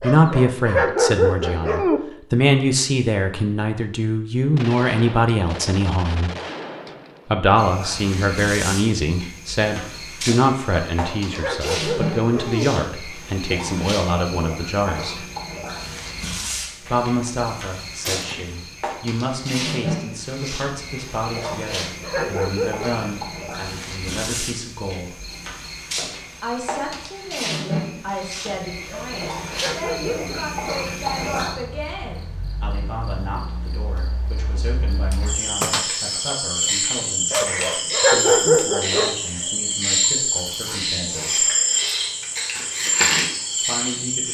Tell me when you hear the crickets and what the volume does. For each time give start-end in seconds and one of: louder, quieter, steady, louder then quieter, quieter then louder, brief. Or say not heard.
7.5-44.3 louder.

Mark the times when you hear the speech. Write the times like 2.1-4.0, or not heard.
0.0-6.3, 7.3-15.2, 16.9-25.2, 26.4-41.5, 43.6-44.3.